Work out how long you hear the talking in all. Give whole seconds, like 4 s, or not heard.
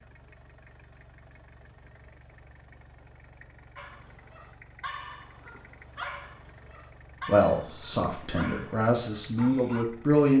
3 s.